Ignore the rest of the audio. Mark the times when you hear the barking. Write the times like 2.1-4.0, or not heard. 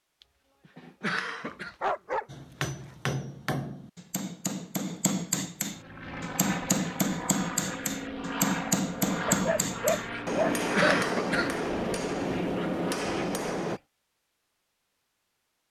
1.5-3.0, 9.2-11.1.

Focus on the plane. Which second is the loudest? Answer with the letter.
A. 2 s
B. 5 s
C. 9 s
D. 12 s
C.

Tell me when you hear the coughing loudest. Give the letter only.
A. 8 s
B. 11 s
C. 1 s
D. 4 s
B.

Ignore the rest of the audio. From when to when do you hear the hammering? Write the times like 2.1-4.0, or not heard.
2.2-13.8.